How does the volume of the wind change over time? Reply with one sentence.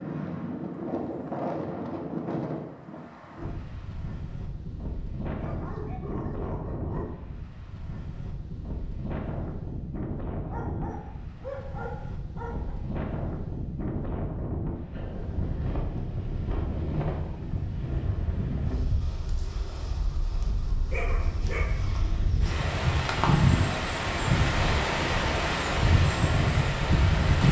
The loudness of the wind goes up.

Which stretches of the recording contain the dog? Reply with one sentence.
The dog can be heard from 5.3 to 7.1 s, from 10.3 to 12.8 s and from 20.9 to 22.5 s.